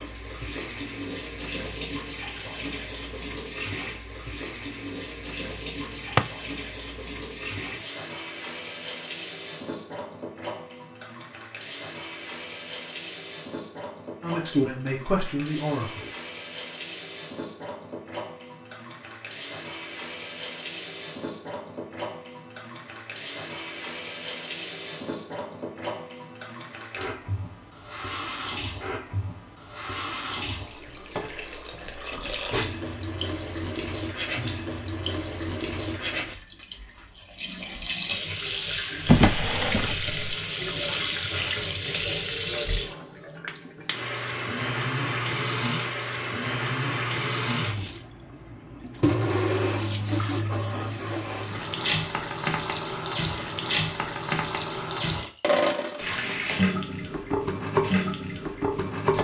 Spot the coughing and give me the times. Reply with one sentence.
The coughing can't be heard in this clip.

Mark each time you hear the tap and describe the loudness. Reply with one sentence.
You can hear the tap from 0.0 to 59.1 s, getting louder.